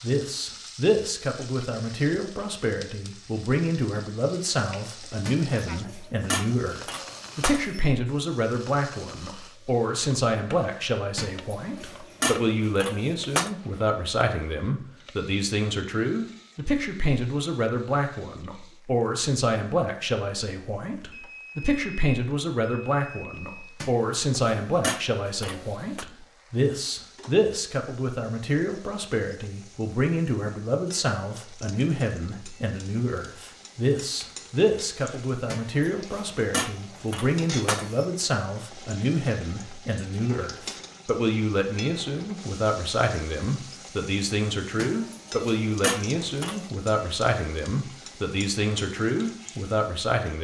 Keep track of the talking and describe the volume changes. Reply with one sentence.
The loudness of the talking stays about the same.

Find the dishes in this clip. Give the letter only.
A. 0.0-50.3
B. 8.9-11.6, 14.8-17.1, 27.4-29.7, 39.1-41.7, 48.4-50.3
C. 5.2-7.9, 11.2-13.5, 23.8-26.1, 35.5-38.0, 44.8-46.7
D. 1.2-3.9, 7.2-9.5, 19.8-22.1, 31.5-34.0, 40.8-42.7
C.